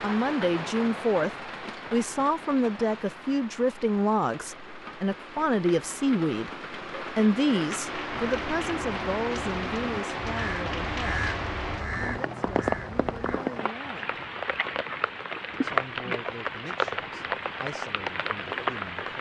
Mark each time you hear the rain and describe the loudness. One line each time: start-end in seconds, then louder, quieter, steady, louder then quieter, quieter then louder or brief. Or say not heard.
0.0-19.1 louder.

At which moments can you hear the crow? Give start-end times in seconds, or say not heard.
8.1-13.4.